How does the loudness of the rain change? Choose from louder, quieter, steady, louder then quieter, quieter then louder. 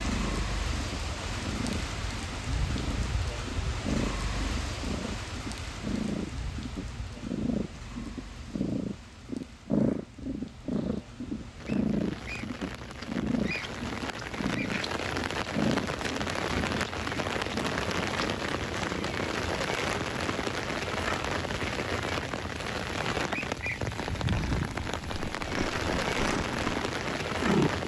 quieter then louder.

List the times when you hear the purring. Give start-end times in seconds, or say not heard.
0.0-19.5, 23.9-27.8.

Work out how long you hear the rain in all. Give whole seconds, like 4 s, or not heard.
28 s.